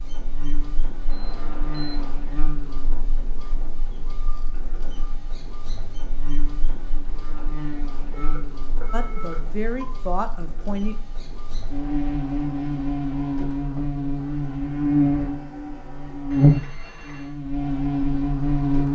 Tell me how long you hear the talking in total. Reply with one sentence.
The talking can be heard for 2 seconds in total.